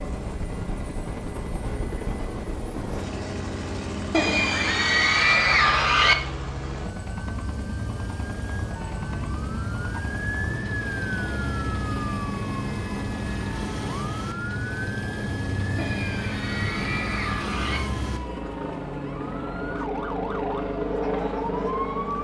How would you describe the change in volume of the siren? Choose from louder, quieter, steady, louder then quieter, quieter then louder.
steady.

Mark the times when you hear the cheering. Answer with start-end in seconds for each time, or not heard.
4.1-6.2, 15.8-17.8.